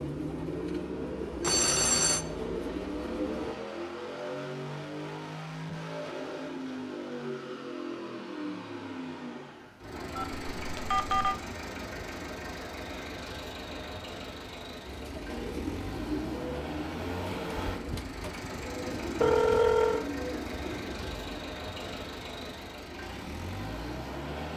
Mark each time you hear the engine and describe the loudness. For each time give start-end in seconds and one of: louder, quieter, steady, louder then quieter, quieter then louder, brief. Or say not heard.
0.0-24.5 steady.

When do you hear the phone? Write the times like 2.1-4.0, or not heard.
1.4-2.2, 10.2-11.3, 19.2-20.1.